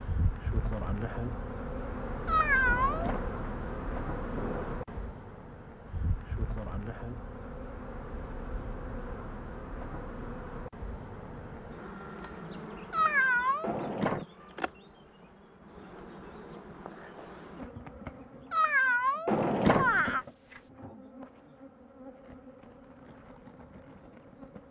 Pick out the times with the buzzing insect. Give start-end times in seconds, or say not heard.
0.0-24.6.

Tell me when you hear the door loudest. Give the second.
20 s.